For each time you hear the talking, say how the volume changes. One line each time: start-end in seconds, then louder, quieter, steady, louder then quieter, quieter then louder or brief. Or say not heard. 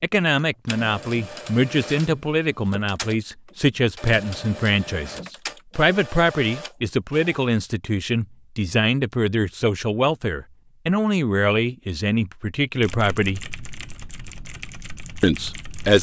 0.0-13.4 steady
15.2-15.9 brief.